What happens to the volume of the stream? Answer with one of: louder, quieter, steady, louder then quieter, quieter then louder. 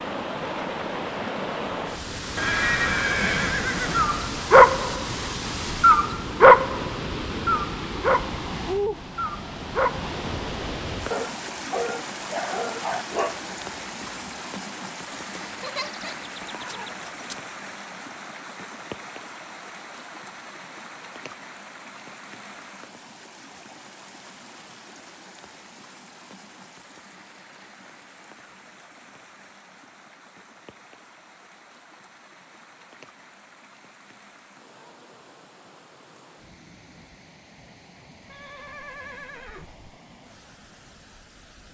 quieter.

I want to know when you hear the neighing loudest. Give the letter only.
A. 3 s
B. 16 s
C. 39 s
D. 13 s
A.